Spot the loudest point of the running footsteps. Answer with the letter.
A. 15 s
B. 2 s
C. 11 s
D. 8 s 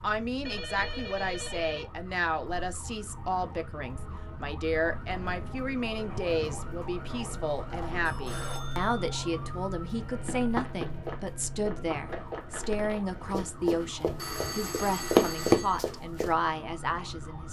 A.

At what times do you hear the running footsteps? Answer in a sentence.
The running footsteps can be heard from 10.2 to 16.3 s.